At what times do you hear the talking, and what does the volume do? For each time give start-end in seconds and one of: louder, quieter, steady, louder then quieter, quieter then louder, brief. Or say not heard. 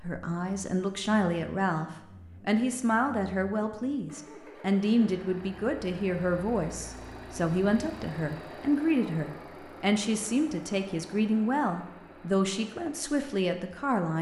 0.0-14.1 steady.